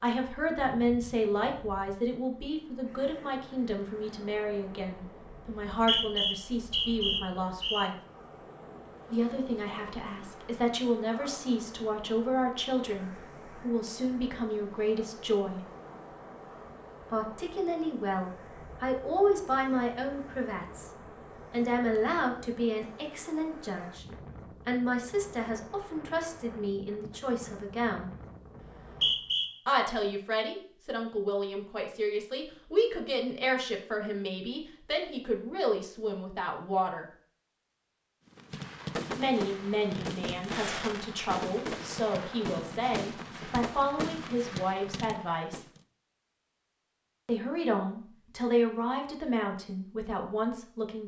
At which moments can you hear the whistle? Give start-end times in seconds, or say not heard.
5.7-7.8, 28.6-29.5.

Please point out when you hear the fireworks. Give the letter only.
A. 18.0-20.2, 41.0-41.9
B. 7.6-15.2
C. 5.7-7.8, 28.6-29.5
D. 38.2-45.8
D.